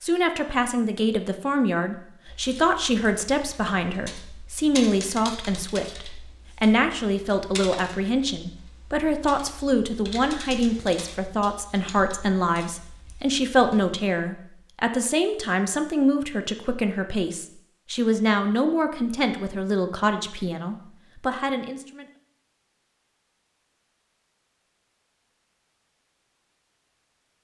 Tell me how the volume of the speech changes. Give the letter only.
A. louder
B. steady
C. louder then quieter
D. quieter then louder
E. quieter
B.